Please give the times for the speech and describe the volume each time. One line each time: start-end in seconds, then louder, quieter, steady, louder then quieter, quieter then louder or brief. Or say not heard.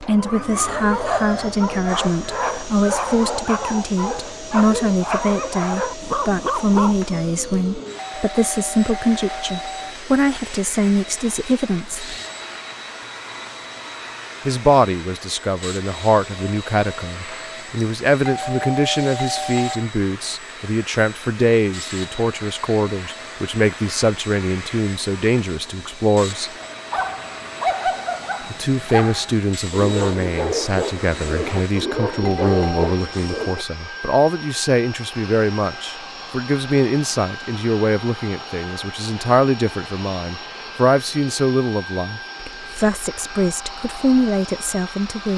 0.0-12.1 steady
14.4-26.5 steady
28.5-45.3 steady.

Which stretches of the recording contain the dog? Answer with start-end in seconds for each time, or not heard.
0.0-7.2, 26.6-33.6.